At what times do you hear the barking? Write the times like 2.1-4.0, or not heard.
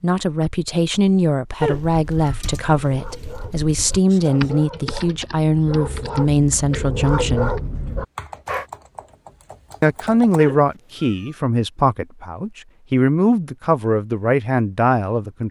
2.8-8.7.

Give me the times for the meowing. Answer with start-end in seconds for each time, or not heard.
1.6-2.5, 10.3-11.3.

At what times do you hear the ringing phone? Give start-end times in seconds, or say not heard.
not heard.